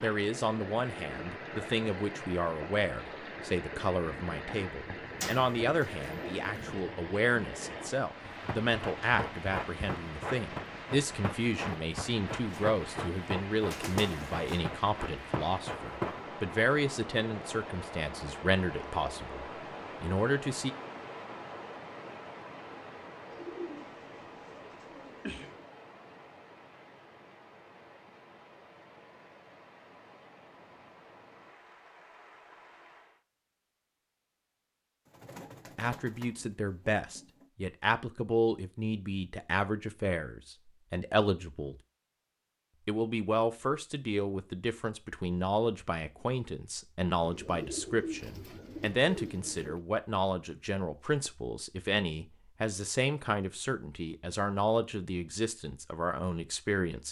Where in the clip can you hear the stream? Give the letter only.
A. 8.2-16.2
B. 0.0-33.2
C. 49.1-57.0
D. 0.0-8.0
B.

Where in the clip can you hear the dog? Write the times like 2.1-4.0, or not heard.
not heard.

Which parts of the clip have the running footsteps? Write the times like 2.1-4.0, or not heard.
8.2-16.2.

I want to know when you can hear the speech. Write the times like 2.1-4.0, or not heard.
0.0-20.7, 35.8-41.8, 42.9-57.0.